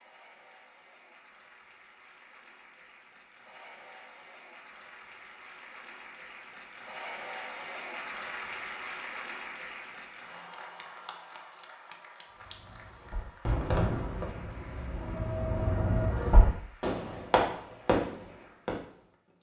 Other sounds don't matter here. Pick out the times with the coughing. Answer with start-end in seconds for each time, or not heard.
not heard.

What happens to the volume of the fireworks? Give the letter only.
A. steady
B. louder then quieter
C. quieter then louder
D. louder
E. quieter
C.